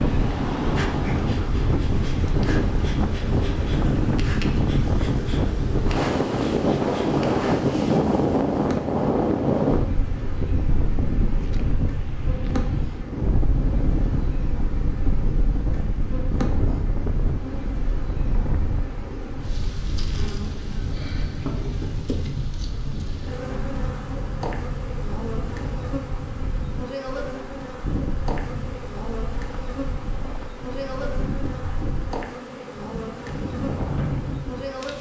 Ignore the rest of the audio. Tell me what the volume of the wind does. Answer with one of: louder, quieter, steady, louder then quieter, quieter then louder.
quieter.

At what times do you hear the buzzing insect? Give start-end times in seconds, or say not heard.
0.0-34.9.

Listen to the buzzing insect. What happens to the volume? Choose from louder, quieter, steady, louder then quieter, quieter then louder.
steady.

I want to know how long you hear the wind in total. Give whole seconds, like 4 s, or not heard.
35 s.